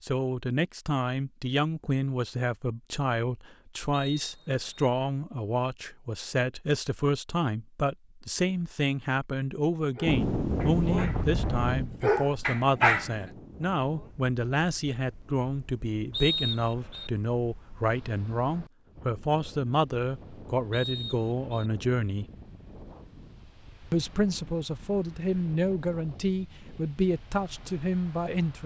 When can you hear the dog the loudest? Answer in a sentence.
The volume of the dog peaks at 13 seconds.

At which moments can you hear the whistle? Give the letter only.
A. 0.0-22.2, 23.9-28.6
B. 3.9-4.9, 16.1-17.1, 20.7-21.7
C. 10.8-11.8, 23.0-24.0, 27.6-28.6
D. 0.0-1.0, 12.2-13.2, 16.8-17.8
B.